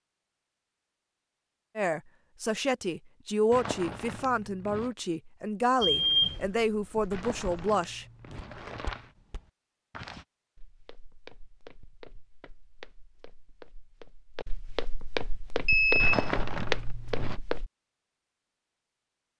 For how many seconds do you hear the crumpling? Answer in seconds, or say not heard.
5 s.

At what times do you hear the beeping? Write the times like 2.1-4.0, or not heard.
5.8-6.5, 15.7-16.3.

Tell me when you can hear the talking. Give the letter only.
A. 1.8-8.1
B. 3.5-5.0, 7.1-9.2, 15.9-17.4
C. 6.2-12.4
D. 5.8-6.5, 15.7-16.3
A.